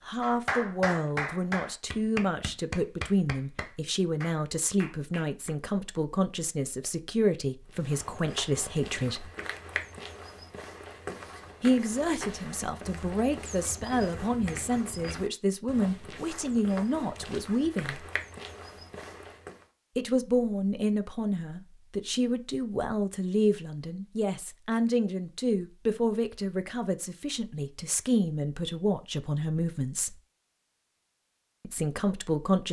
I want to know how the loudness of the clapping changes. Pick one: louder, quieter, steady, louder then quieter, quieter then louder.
quieter.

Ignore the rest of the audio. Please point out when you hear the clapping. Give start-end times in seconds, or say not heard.
0.2-5.5.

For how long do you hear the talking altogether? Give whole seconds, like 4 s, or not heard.
27 s.